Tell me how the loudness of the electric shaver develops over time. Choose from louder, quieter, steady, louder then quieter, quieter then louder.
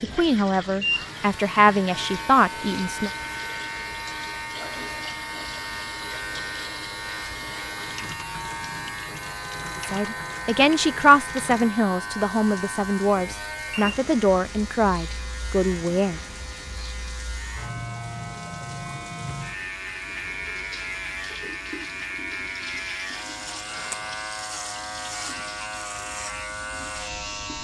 steady.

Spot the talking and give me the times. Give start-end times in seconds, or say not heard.
0.0-3.1, 9.8-16.2.